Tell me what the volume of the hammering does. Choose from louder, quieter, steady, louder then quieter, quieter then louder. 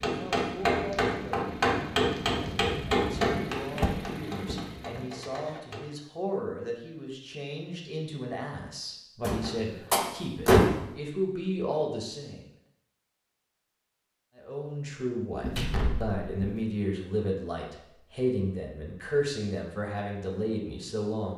quieter.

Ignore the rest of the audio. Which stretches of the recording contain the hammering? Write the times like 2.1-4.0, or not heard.
0.0-5.9.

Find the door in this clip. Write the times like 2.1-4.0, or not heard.
3.8-4.5, 9.2-10.8, 15.4-16.6.